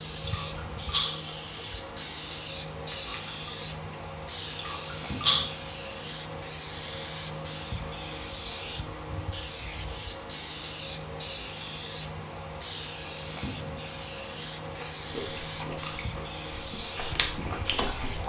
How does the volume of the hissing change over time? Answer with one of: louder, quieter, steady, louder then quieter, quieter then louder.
steady.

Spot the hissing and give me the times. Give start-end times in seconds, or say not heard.
0.0-18.2.